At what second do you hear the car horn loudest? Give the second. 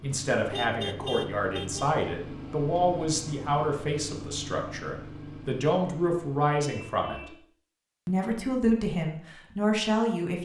1 s.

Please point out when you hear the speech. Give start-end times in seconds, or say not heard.
0.0-7.3, 8.1-10.3.